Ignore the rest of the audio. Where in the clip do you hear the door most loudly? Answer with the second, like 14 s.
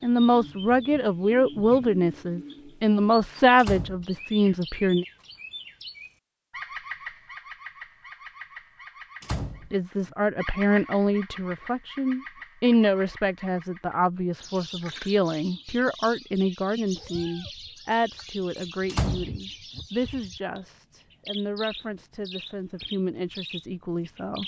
19 s.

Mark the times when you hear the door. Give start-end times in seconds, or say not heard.
3.5-4.5, 9.2-10.2, 18.9-19.8.